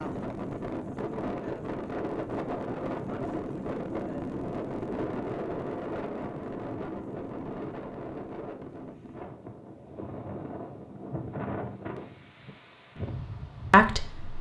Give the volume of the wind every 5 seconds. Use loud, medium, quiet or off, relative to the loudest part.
loud, loud, medium.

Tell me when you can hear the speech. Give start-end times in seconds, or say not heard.
13.7-14.3.